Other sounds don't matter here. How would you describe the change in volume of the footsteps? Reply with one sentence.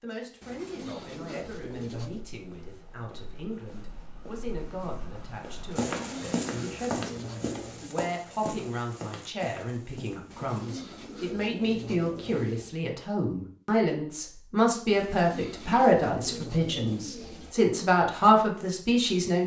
The volume of the footsteps goes up, then down.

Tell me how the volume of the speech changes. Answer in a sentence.
The loudness of the speech goes up.